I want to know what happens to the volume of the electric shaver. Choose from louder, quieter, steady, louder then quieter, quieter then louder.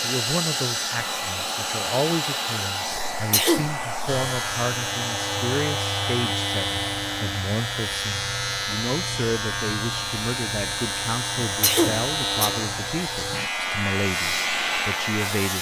steady.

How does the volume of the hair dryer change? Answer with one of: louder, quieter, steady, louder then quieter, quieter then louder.
quieter then louder.